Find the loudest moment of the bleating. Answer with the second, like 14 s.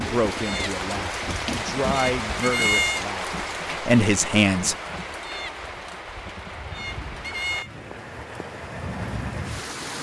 3 s.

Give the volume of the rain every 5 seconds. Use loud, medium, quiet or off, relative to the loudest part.
loud, medium.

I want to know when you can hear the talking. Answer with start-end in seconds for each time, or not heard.
0.0-4.8.